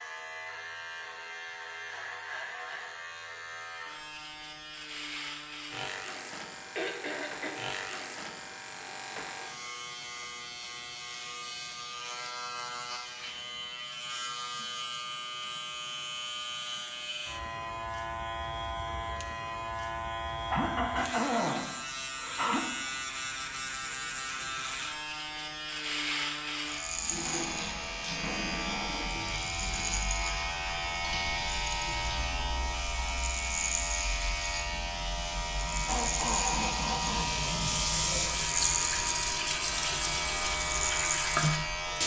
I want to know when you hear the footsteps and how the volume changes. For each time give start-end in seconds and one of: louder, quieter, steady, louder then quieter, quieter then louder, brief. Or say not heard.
not heard.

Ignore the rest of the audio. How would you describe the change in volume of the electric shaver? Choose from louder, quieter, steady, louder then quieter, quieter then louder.
louder.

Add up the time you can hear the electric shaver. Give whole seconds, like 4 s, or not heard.
42 s.